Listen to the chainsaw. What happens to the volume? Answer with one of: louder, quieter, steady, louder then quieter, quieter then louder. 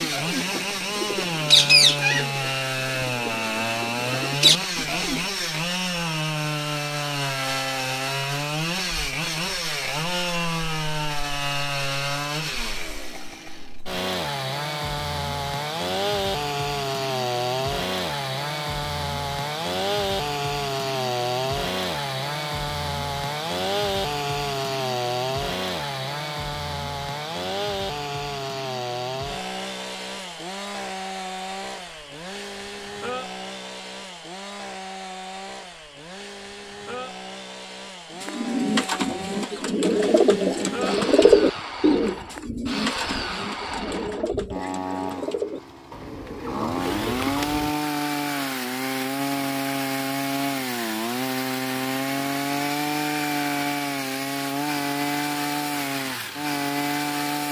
quieter then louder.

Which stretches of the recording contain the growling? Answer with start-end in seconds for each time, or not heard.
not heard.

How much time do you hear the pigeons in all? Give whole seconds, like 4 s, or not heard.
15 s.